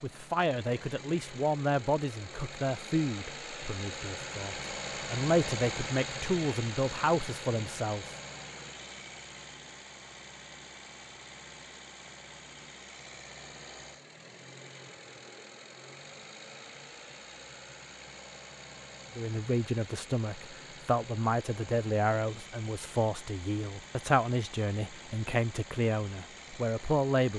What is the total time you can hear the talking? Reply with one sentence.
The talking can be heard for 16 seconds in total.